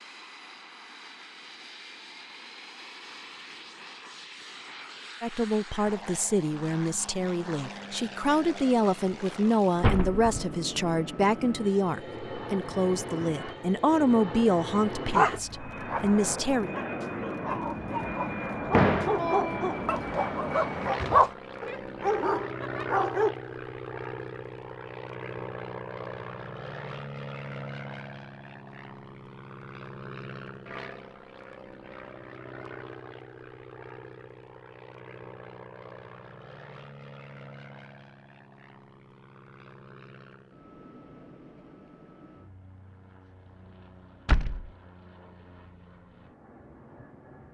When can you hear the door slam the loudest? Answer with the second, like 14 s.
19 s.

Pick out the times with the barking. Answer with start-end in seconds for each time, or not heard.
15.2-23.4.